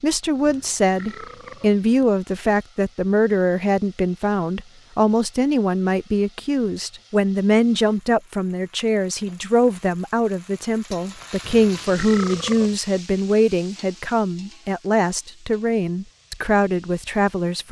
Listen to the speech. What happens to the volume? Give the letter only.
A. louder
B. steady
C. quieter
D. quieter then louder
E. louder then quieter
B.